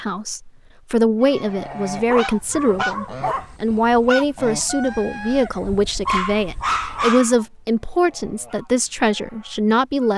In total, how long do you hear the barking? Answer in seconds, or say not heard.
3 s.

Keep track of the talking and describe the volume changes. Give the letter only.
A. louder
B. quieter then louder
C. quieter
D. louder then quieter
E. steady
E.